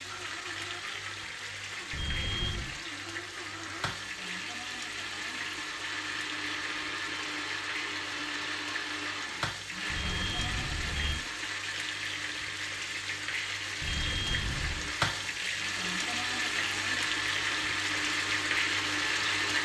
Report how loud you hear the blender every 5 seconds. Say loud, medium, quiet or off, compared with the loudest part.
medium, loud, medium, loud.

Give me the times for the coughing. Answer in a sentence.
The coughing can't be heard in this clip.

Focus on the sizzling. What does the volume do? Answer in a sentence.
The volume of the sizzling goes up.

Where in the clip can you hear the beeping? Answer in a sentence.
You can hear the beeping from 1.9 to 2.8 s, from 9.9 to 11.2 s and from 13.8 to 14.9 s.